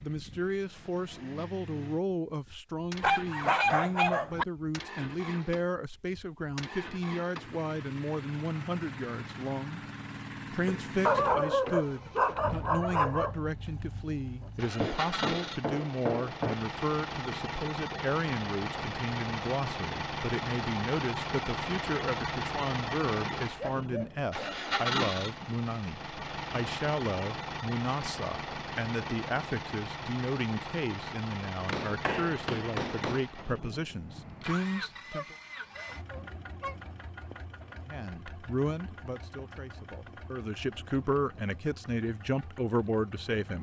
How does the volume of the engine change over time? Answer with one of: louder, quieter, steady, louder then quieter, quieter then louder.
louder then quieter.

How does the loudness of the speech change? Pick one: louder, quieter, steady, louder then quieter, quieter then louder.
steady.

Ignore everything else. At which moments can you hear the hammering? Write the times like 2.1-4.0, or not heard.
10.7-12.2, 14.8-16.6, 31.6-33.2.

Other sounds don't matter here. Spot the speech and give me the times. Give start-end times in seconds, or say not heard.
0.0-9.8, 10.5-35.4, 37.9-43.5.